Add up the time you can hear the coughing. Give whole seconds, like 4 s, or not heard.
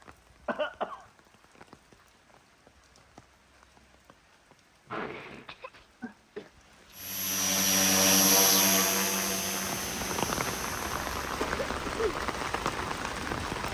3 s.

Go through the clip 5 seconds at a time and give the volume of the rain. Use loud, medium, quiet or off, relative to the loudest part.
quiet, quiet, loud.